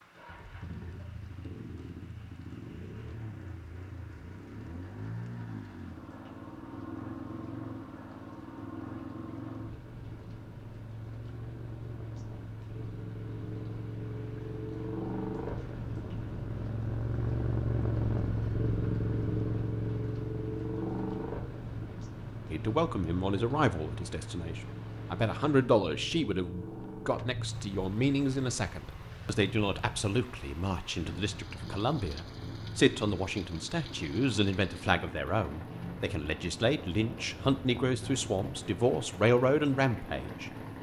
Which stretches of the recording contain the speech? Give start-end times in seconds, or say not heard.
22.5-40.5.